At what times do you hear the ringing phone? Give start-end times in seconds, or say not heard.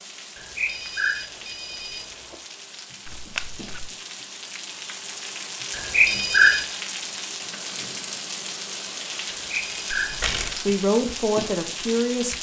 0.3-2.4, 5.7-6.7, 9.3-10.2.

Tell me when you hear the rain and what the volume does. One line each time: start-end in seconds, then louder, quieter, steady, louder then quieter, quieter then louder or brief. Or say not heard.
0.0-12.3 louder.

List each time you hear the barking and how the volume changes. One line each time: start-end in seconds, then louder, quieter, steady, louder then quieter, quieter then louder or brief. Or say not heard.
not heard.